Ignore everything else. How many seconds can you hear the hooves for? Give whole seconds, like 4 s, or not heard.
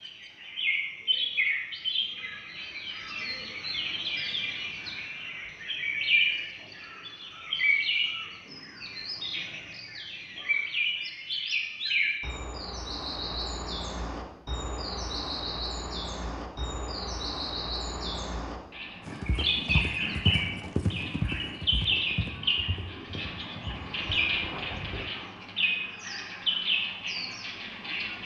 6 s.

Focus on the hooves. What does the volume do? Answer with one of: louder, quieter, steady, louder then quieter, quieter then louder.
quieter.